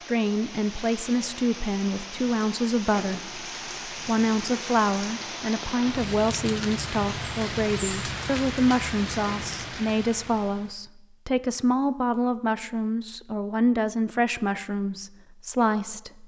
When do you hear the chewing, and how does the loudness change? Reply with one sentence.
You can't hear the chewing here.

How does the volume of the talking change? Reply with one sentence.
The volume of the talking stays about the same.